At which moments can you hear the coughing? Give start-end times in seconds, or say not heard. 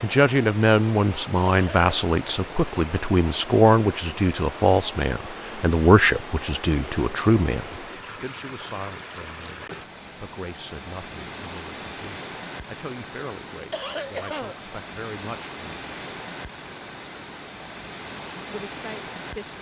1.4-1.9, 13.7-14.6.